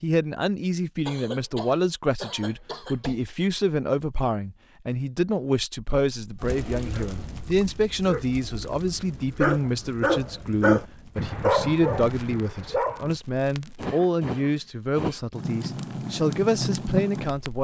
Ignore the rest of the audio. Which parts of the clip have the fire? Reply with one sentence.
The fire can be heard from 6.2 to 17.5 s.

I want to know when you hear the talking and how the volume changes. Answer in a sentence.
The talking can be heard from 0.0 to 17.5 s, at a steady volume.